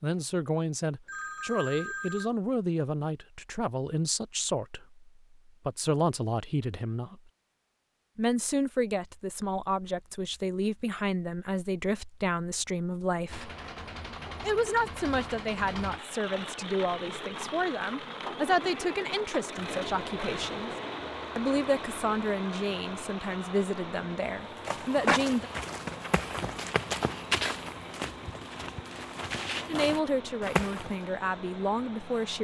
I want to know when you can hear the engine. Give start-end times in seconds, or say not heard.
13.2-32.3.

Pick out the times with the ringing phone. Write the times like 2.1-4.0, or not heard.
1.1-2.3.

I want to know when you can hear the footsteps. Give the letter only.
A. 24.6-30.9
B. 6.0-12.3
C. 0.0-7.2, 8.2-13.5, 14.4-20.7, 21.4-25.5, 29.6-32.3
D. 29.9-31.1
A.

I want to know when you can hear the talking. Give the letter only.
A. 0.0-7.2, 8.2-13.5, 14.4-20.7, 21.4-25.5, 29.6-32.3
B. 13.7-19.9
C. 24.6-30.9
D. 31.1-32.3
A.